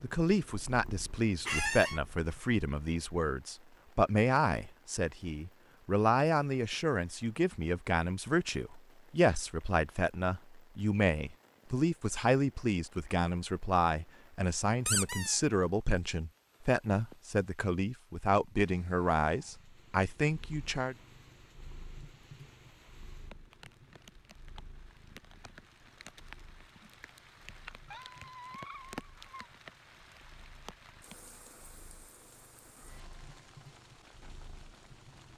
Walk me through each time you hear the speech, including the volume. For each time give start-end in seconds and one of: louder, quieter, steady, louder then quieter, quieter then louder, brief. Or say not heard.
0.0-20.9 steady.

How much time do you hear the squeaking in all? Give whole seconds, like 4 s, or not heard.
3 s.